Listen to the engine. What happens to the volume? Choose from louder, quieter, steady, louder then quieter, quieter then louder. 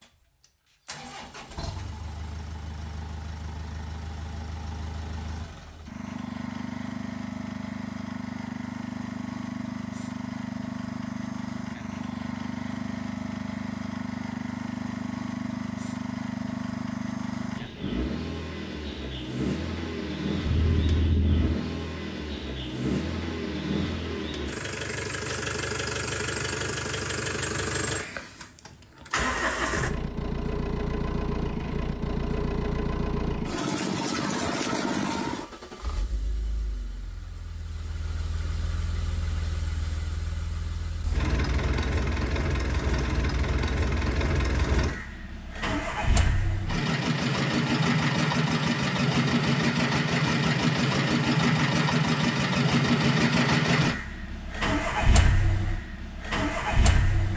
louder.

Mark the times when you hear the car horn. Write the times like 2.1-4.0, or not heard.
20.4-21.6.